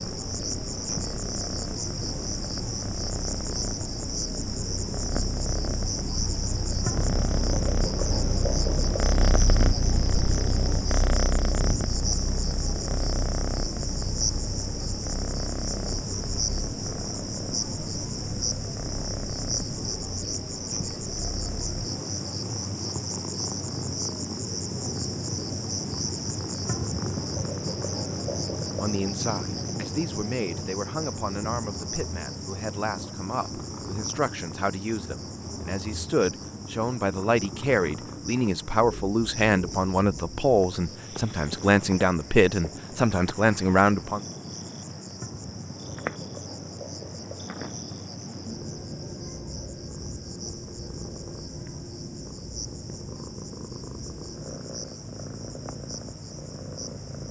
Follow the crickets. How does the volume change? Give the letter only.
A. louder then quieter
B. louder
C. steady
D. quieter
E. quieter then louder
D.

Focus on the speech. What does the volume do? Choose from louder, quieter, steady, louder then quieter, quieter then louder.
louder.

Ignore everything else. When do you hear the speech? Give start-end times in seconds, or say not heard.
28.8-44.2.